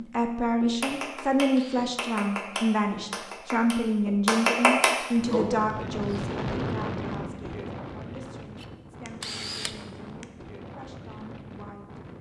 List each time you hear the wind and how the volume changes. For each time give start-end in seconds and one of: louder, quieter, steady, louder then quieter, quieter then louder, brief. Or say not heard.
5.1-12.1 quieter.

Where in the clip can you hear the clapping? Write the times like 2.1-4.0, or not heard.
0.6-5.5.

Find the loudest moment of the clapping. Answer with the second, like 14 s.
5 s.